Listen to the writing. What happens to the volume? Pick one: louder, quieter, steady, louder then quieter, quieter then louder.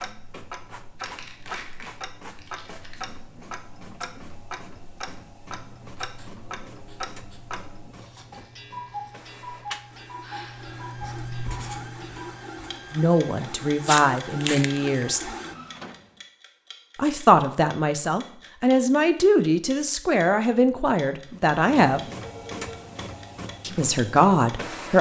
louder.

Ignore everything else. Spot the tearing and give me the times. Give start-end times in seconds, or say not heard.
0.9-3.0, 13.8-15.1.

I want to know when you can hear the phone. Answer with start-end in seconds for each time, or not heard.
10.2-10.9, 22.1-22.9.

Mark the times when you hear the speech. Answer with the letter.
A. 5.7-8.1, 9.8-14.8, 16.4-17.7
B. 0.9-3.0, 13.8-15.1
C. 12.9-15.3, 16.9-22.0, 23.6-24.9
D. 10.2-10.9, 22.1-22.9
C.